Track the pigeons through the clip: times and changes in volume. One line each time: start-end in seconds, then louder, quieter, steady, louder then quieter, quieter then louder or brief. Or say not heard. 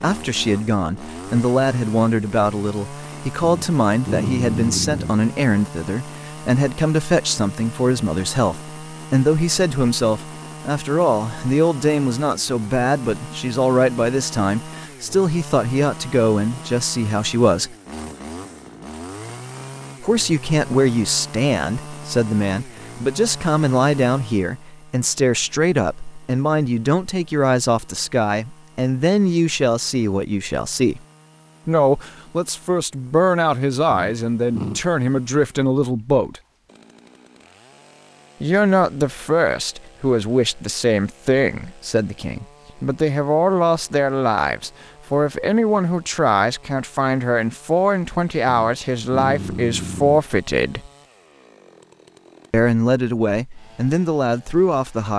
not heard.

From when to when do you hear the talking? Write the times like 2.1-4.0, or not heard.
0.0-17.8, 20.0-31.0, 31.6-36.4, 38.4-50.9, 52.5-55.1.